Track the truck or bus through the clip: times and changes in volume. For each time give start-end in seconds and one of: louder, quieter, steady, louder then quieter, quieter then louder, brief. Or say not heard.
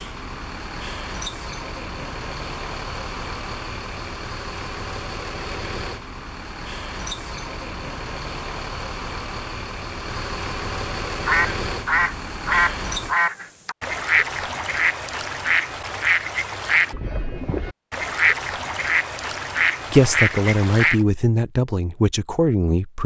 0.0-13.2 steady.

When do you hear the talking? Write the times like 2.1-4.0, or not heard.
19.9-23.0.